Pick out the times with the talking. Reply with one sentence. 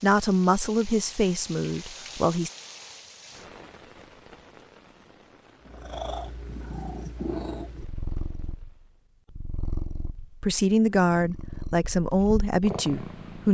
The talking can be heard from 0.0 to 2.5 s and from 10.3 to 13.4 s.